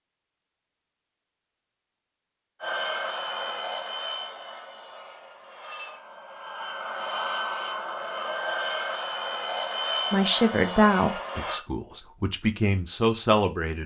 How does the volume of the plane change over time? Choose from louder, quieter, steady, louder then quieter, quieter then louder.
quieter then louder.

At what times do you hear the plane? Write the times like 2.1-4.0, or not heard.
2.6-11.6.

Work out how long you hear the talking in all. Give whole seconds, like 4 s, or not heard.
4 s.